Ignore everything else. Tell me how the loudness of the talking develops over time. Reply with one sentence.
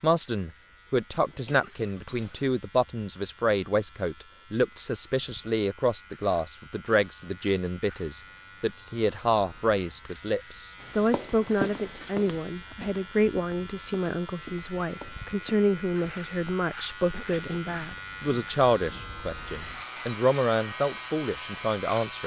The volume of the talking stays about the same.